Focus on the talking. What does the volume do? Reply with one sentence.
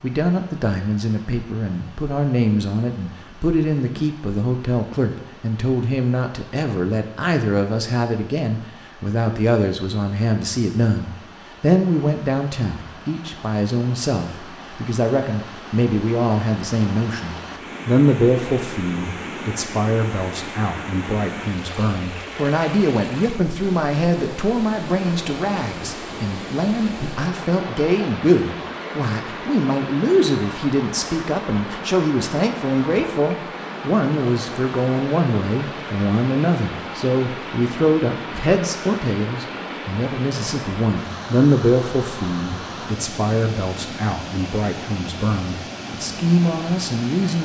The volume of the talking stays about the same.